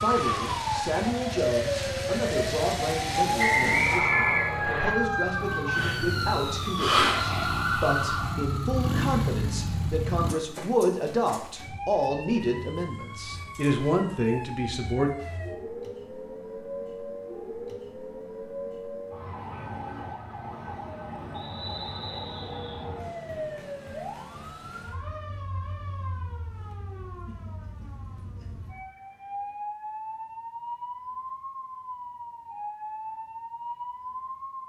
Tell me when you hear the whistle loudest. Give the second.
4 s.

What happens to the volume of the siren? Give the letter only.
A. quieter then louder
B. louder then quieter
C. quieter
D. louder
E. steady
C.